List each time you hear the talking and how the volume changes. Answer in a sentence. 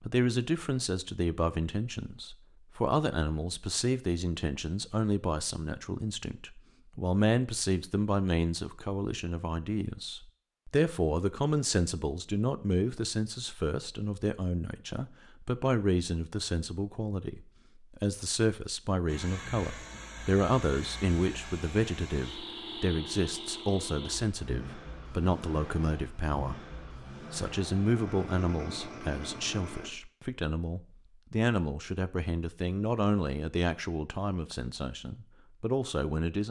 The talking can be heard from 0.0 to 36.4 s, at a steady volume.